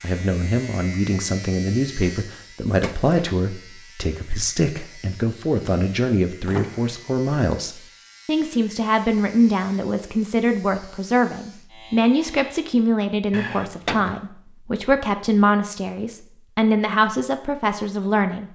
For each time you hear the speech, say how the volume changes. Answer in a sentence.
The speech can be heard from 0.0 to 18.4 s, at a steady volume.